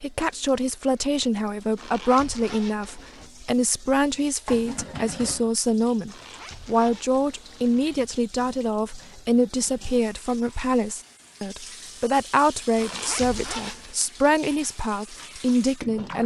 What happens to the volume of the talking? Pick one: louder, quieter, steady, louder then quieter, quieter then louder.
steady.